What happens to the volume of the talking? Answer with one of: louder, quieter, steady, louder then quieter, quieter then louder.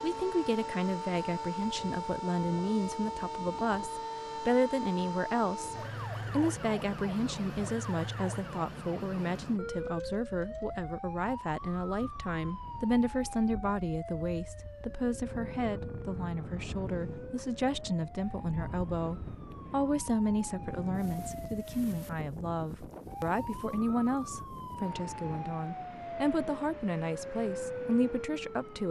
steady.